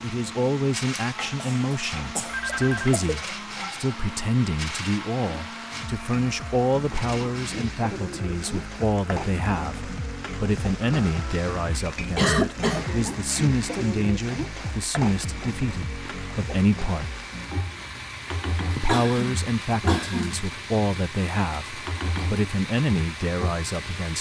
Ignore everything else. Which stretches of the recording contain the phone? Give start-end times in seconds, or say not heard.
2.3-3.0.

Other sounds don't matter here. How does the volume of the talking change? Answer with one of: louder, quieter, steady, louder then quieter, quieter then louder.
steady.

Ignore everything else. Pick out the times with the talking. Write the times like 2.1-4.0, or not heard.
0.0-17.1, 18.8-24.1.